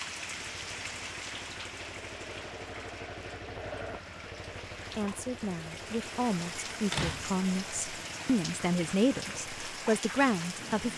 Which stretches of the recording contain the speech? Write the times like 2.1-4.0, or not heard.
4.9-10.9.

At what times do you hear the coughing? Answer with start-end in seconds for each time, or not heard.
not heard.